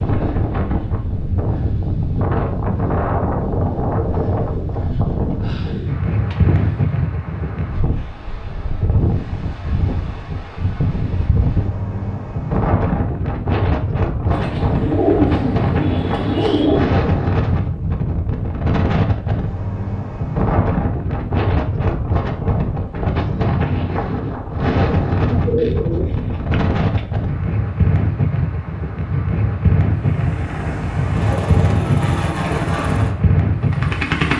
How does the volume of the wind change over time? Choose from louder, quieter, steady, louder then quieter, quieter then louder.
steady.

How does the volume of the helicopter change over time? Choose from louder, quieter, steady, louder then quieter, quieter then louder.
louder then quieter.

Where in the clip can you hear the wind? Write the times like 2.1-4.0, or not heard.
0.0-34.3.